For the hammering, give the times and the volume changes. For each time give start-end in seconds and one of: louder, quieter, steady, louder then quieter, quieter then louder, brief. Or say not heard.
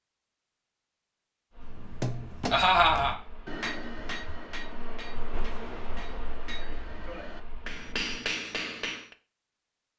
1.7-9.2 quieter then louder.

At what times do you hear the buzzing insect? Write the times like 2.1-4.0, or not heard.
1.5-8.1.